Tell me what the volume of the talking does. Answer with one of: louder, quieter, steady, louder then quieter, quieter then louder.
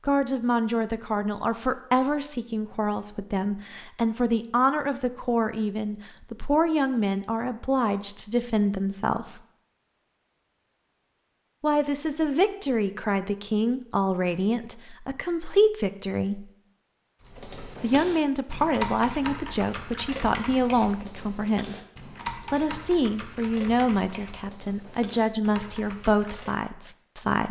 steady.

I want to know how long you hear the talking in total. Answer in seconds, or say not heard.
23 s.